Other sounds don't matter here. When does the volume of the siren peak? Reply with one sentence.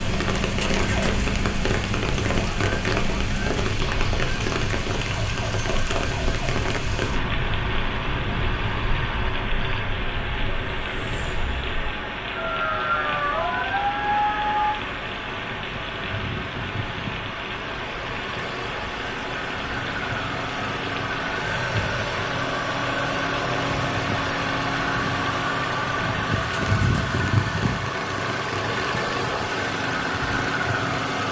The volume of the siren peaks at 14 seconds.